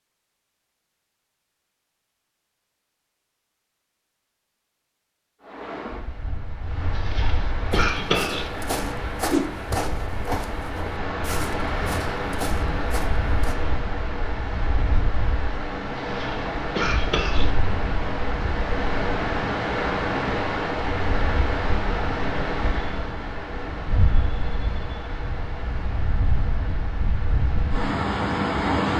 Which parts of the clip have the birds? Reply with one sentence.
You can't hear the birds here.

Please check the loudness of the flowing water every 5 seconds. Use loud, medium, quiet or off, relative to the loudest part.
off, medium, loud, loud, loud, loud.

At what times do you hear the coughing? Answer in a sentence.
The coughing can be heard from 7.0 to 8.5 s and from 15.9 to 17.5 s.